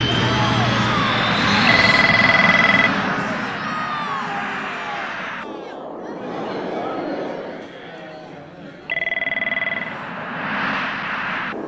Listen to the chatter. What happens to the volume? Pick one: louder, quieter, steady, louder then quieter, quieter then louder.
quieter.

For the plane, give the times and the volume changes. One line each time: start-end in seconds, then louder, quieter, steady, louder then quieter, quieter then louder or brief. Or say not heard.
0.0-7.8 quieter
9.1-11.6 brief.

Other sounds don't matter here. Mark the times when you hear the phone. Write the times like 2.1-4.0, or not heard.
1.6-3.0, 8.8-9.9.